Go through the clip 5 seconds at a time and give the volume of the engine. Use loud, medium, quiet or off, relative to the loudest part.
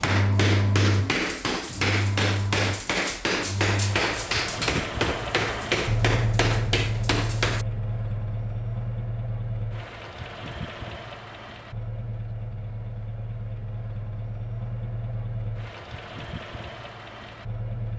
loud, loud, medium, medium.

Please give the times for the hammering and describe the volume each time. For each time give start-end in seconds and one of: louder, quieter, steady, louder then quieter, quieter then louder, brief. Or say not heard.
0.0-7.7 steady.